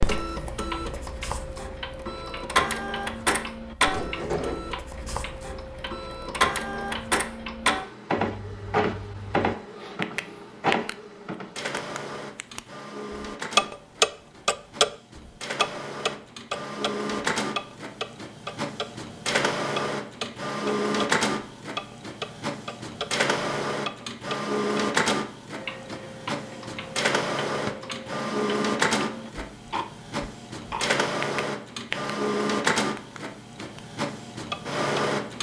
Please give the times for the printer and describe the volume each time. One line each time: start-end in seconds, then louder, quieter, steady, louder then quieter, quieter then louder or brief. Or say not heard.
0.0-35.3 steady.